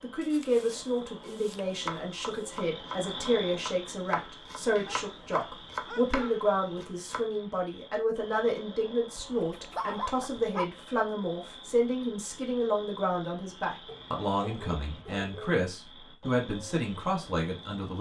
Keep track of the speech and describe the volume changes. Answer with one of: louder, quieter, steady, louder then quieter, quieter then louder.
steady.